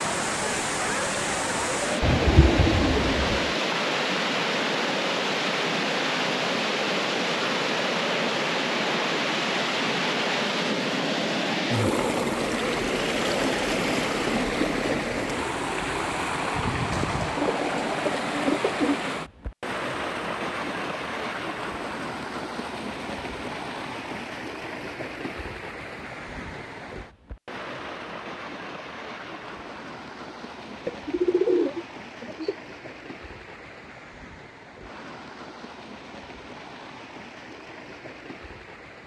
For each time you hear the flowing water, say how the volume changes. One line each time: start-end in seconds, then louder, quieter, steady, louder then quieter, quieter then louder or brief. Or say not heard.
0.0-39.0 quieter.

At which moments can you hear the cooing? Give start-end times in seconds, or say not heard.
2.0-3.5, 16.9-19.0, 30.9-32.5.